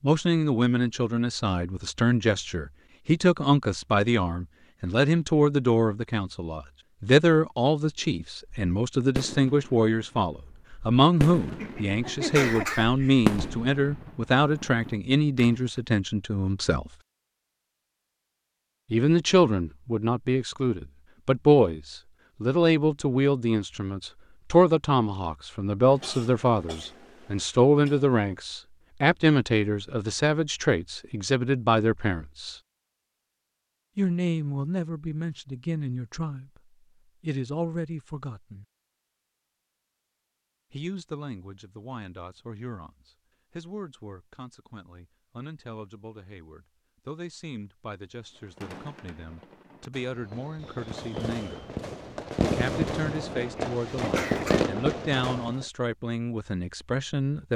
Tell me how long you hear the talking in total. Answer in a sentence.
The talking can be heard for 51 seconds in total.